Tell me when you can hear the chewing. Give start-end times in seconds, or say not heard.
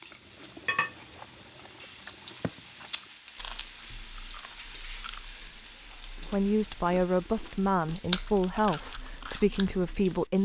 0.0-10.2.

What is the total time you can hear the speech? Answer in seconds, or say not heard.
4 s.